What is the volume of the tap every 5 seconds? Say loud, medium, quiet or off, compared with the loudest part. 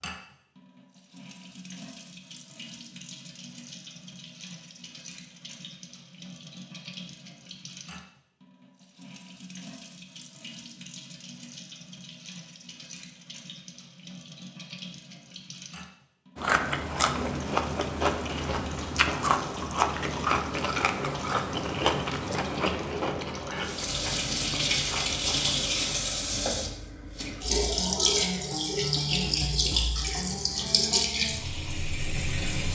quiet, quiet, quiet, quiet, medium, loud, loud.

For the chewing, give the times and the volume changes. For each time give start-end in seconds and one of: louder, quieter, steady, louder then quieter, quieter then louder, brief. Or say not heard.
16.4-26.1 quieter.